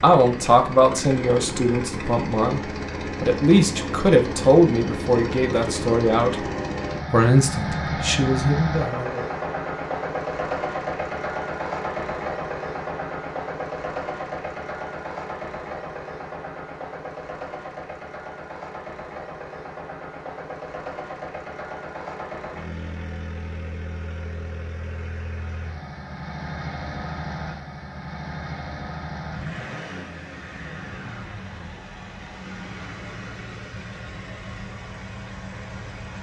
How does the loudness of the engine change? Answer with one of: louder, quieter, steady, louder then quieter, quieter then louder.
quieter.